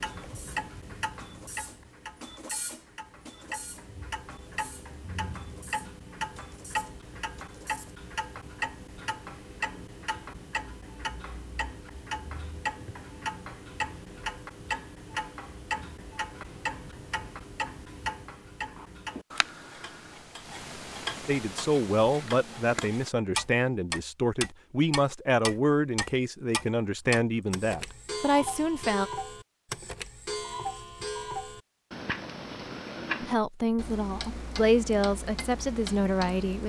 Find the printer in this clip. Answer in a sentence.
The printer can be heard from 0.1 to 8.0 s.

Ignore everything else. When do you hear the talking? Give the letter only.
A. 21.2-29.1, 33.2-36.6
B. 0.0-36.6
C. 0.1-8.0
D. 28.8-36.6
A.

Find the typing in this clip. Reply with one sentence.
You can't hear the typing here.